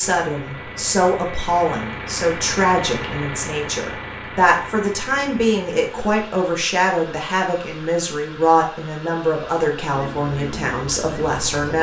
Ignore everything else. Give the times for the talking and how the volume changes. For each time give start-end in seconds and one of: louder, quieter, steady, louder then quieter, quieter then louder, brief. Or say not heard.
0.0-11.7 steady.